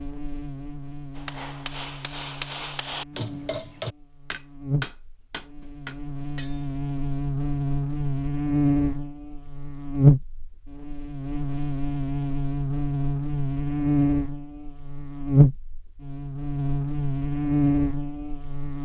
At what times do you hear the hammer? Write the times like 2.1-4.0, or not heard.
1.1-6.7.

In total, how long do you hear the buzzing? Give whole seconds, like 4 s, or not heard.
19 s.